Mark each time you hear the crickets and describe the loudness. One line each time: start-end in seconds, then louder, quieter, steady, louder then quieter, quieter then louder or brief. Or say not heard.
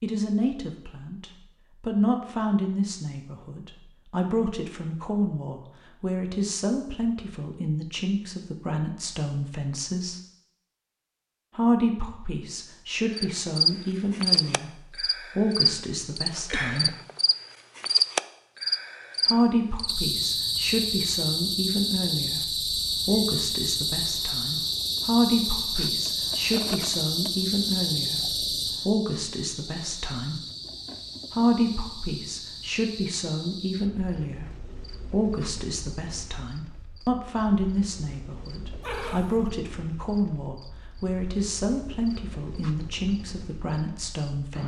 13.1-44.6 quieter.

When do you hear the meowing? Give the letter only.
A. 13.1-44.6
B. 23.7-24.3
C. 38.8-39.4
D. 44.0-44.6
C.